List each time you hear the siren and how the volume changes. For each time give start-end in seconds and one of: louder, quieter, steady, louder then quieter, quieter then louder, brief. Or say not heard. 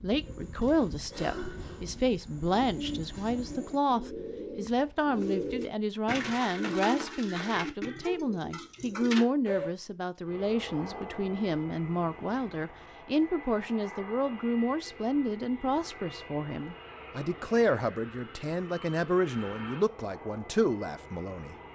not heard.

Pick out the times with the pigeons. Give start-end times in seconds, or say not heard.
0.1-9.7.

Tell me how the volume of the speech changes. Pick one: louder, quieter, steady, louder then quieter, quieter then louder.
steady.